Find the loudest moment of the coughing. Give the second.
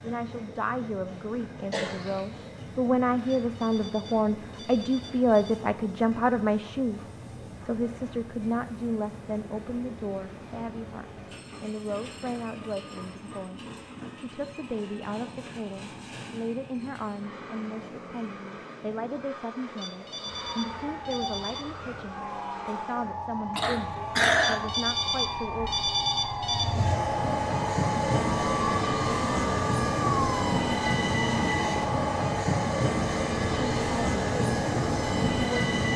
24 s.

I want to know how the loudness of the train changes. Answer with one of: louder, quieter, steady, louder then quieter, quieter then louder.
louder.